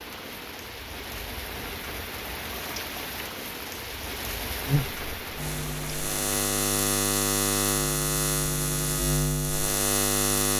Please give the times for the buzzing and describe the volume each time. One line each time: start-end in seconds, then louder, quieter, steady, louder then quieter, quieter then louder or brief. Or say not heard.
4.7-10.5 louder.